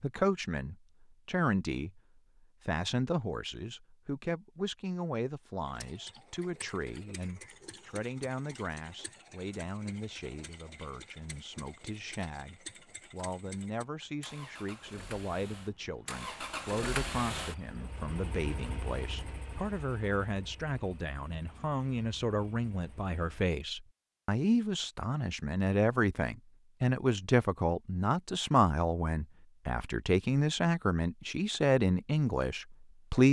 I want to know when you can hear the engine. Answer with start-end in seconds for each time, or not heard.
5.7-23.4.